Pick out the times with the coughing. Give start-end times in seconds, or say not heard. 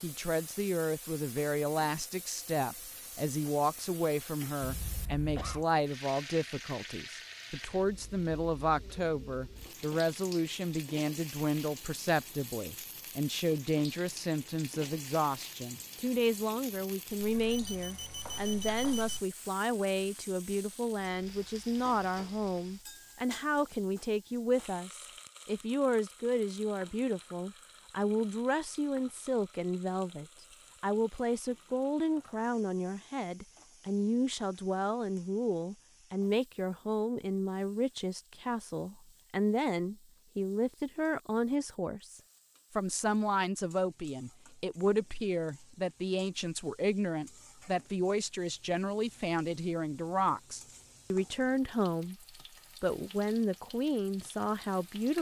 4.6-5.7.